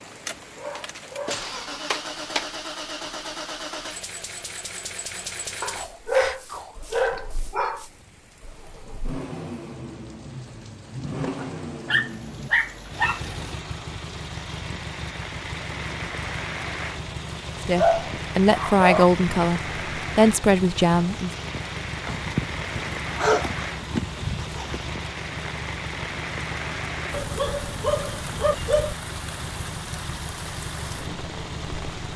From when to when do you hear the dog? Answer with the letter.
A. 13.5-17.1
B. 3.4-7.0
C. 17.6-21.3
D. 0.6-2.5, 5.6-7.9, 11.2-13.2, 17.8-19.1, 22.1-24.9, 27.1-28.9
D.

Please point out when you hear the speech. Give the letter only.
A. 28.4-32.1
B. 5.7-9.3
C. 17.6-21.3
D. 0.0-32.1
C.